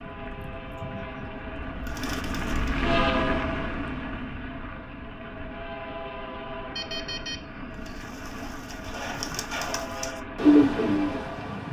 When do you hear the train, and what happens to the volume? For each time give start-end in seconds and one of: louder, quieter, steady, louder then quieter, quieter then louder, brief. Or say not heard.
0.0-11.6 louder then quieter.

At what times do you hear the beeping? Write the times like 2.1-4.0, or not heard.
6.8-8.1.